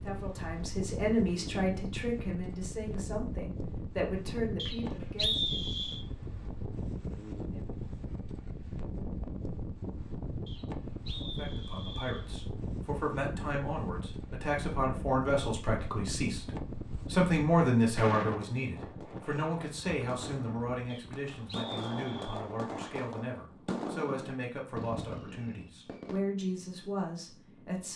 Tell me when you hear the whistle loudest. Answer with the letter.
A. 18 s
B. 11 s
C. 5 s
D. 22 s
C.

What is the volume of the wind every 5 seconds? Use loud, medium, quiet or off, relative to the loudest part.
loud, loud, loud, loud, medium, quiet.